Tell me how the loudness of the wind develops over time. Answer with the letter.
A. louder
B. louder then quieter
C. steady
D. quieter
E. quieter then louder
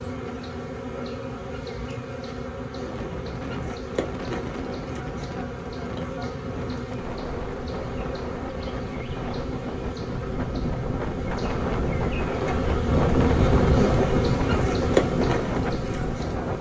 A.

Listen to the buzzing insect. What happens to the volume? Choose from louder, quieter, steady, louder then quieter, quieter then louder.
louder.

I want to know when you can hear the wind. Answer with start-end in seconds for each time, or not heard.
2.8-16.5.